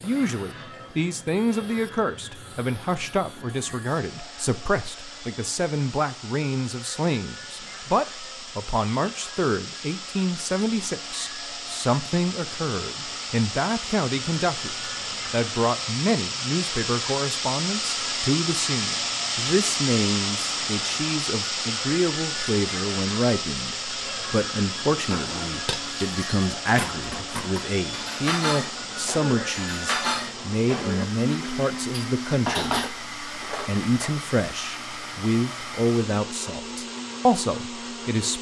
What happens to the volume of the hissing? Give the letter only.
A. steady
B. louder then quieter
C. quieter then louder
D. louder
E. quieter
B.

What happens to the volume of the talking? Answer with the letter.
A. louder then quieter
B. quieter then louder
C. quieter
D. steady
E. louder
D.